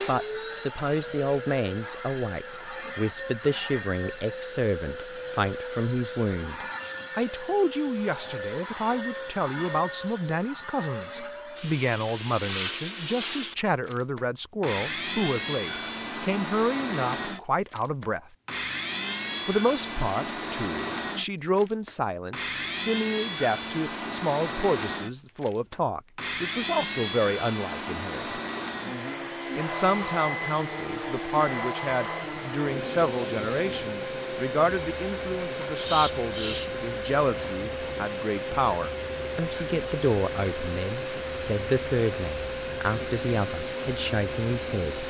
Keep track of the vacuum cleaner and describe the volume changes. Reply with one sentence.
The volume of the vacuum cleaner stays about the same.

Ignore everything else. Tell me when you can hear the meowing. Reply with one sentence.
You can hear the meowing from 35.6 to 36.8 s.